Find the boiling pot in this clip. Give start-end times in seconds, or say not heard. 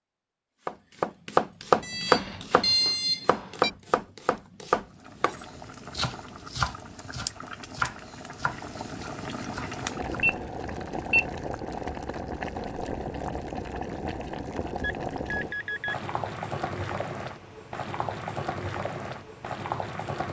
4.8-20.2.